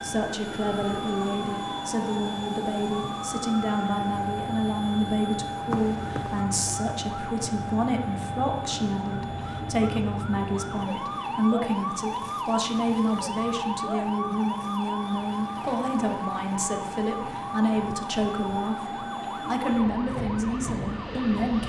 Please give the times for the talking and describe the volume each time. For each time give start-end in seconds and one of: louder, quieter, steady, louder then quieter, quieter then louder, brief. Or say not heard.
0.0-21.6 steady.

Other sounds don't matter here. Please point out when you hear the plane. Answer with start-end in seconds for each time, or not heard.
0.0-21.6.